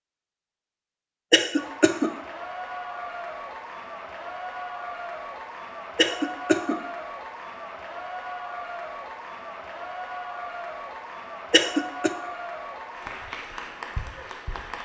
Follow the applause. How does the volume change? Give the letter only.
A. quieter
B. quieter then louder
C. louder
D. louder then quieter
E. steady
E.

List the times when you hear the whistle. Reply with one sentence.
You can't hear the whistle here.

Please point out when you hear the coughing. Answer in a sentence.
You can hear the coughing from 1.3 to 2.1 s, from 6.0 to 6.8 s and from 11.5 to 12.1 s.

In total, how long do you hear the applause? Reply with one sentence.
You can hear the applause for 13 seconds altogether.